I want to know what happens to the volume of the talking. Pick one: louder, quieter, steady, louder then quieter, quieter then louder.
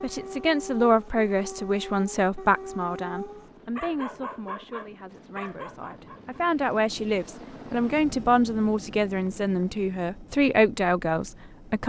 quieter then louder.